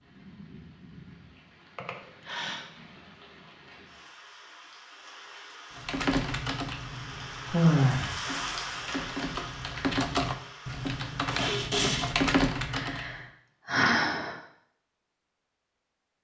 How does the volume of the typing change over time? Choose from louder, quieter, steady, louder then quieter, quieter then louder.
quieter then louder.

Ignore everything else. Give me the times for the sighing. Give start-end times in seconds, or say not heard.
1.8-2.6, 7.5-8.1, 12.8-14.3.